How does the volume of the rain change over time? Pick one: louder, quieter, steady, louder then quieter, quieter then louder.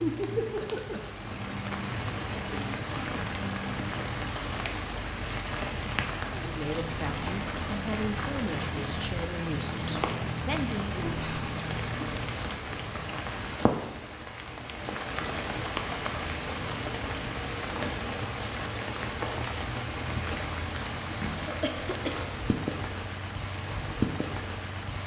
steady.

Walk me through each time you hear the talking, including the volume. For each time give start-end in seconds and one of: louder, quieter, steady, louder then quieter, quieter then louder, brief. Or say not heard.
6.3-10.9 steady.